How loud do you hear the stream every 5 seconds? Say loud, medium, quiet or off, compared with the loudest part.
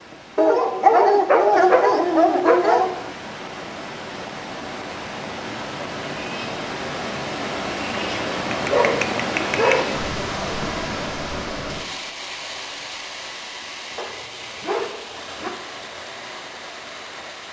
medium, loud, loud, medium.